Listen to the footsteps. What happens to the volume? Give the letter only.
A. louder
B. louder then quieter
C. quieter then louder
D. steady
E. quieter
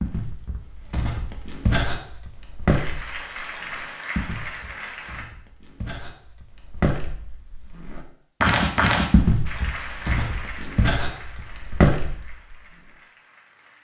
C.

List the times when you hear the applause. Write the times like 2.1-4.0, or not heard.
2.6-5.2, 9.4-13.7.